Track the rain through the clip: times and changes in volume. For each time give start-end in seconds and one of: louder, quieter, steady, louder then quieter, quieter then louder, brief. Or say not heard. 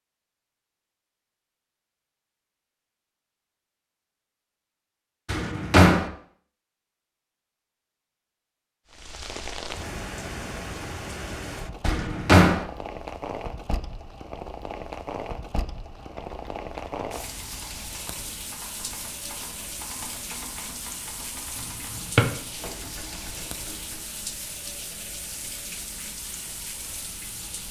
8.9-27.6 steady.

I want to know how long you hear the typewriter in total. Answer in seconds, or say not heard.
8 s.